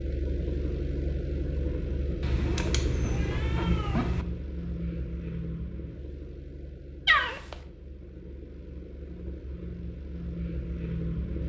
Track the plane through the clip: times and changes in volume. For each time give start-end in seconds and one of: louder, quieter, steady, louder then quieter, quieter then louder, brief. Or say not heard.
0.0-11.4 quieter then louder.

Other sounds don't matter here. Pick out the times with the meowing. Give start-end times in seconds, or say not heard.
2.2-4.2, 7.0-7.5.